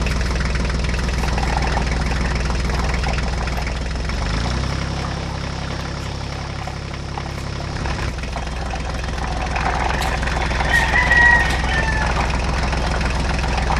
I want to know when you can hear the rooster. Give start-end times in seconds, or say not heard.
10.7-12.1.